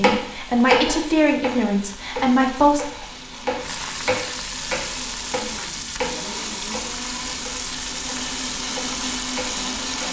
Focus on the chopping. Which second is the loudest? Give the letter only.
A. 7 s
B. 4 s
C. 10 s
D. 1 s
D.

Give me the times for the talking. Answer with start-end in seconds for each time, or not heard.
0.0-2.9.